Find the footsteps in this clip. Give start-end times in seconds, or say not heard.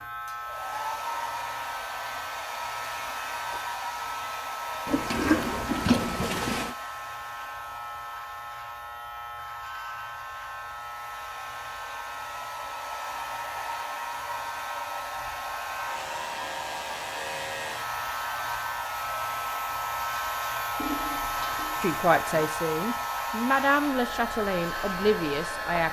not heard.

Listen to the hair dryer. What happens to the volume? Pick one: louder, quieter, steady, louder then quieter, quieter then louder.
quieter then louder.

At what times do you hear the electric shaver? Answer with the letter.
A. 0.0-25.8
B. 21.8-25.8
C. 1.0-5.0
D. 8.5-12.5
A.